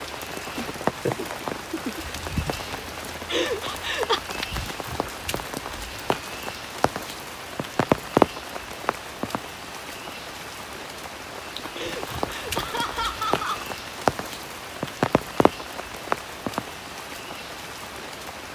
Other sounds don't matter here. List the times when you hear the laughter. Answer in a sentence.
The laughter can be heard from 3.2 to 4.2 s and from 11.8 to 13.7 s.